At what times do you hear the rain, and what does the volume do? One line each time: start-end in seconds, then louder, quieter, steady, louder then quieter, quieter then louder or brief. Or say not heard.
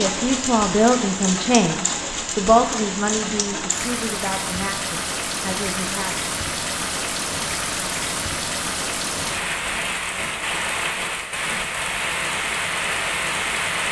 0.0-13.8 steady.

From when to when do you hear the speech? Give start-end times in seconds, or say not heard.
0.0-6.2.